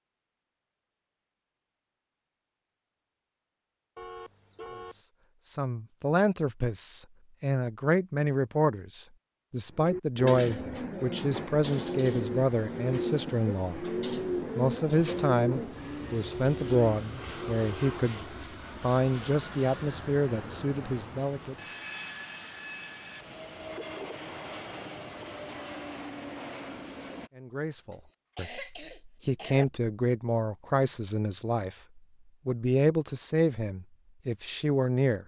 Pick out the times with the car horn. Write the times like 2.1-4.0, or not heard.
4.0-5.0.